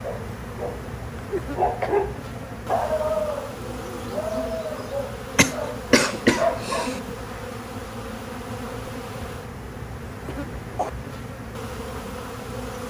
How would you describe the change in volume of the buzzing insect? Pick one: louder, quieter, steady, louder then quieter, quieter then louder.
steady.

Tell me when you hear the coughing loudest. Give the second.
6 s.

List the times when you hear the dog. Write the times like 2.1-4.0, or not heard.
0.0-7.2.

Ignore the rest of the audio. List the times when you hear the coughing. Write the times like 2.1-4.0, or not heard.
1.3-1.9, 5.3-7.0, 10.2-10.9.